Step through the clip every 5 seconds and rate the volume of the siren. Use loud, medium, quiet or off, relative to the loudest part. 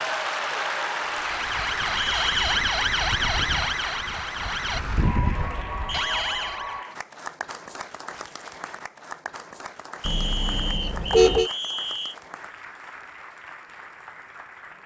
loud, loud, off.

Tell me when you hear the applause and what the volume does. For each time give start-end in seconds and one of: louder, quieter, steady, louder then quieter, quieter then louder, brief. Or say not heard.
0.0-14.8 quieter.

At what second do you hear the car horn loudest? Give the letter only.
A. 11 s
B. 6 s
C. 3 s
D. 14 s
A.